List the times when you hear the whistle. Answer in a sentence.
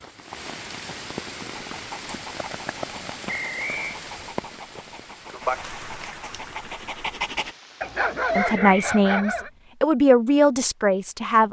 The whistle can be heard from 3.2 to 4.0 s and from 8.3 to 9.0 s.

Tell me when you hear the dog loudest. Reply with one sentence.
The volume of the dog peaks at 8 seconds.